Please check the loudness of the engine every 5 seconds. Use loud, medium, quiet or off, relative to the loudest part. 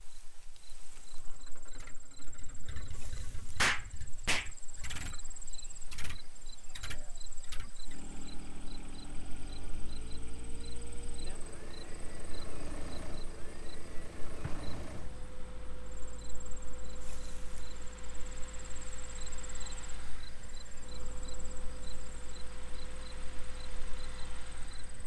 medium, loud, loud, loud, loud.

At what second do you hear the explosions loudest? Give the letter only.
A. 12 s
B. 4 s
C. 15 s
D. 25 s
B.